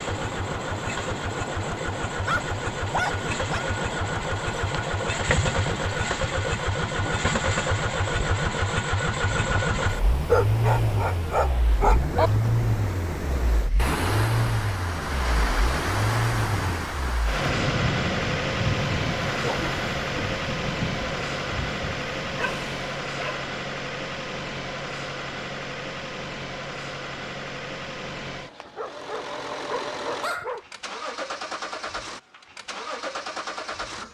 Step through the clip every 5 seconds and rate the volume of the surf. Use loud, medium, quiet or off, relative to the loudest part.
medium, medium, loud, loud, medium, off, off.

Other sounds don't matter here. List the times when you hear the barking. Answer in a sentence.
You can hear the barking from 2.1 to 3.6 s, from 10.2 to 12.3 s, from 22.4 to 23.4 s and from 28.6 to 30.6 s.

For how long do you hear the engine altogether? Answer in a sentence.
The engine can be heard for 34 seconds in total.